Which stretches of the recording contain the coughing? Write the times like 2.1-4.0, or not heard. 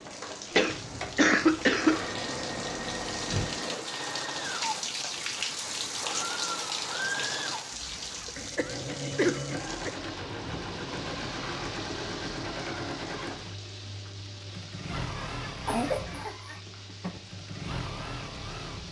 0.5-2.0, 8.2-9.9, 15.0-16.6.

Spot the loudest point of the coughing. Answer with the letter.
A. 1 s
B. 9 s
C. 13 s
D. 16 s
A.